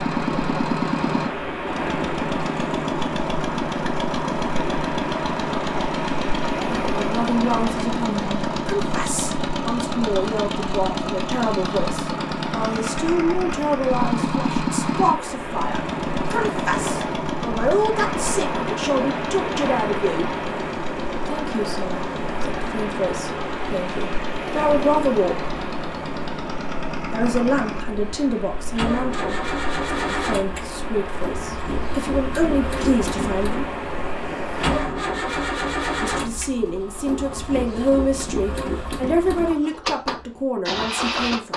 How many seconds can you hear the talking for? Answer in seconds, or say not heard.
30 s.